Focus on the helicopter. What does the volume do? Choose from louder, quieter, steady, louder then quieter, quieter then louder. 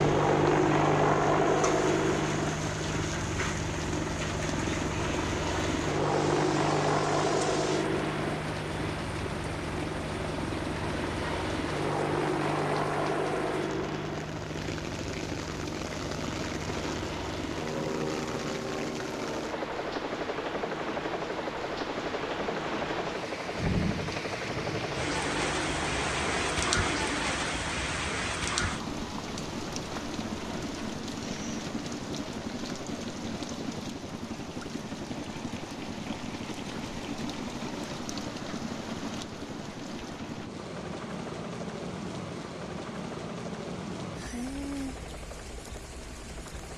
quieter.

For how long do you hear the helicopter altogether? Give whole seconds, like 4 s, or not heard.
47 s.